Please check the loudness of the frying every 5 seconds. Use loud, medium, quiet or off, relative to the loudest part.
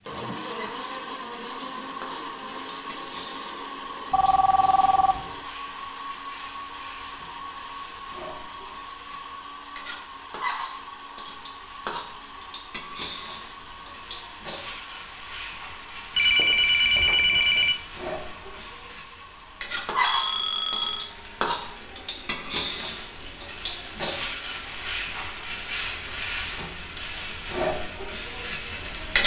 quiet, quiet, medium, medium, loud, loud.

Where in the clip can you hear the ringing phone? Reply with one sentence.
The ringing phone can be heard from 4.1 to 5.3 s, from 16.1 to 17.8 s and from 20.0 to 21.1 s.